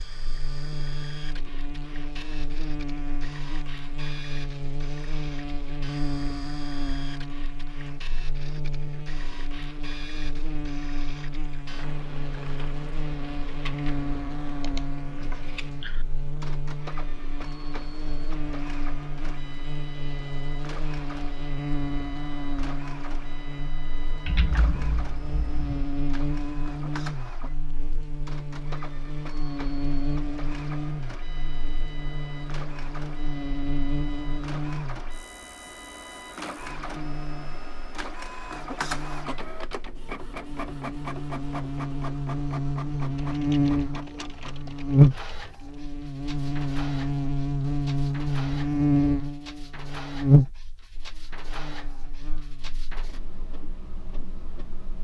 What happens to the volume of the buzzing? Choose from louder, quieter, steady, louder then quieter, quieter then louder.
louder.